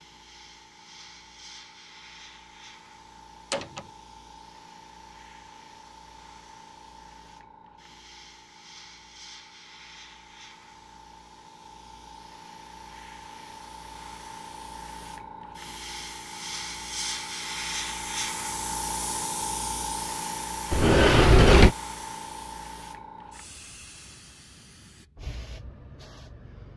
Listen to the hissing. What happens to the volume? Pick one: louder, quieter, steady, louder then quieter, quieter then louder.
louder then quieter.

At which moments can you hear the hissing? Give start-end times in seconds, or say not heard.
0.0-26.7.